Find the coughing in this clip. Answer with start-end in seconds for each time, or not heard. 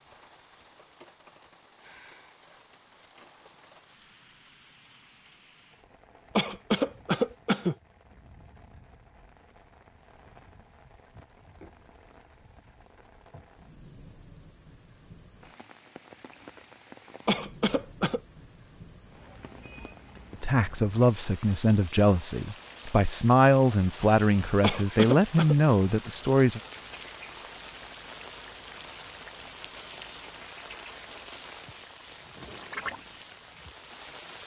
6.3-7.8, 17.2-18.2, 24.6-25.6.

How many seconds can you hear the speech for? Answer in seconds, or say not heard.
6 s.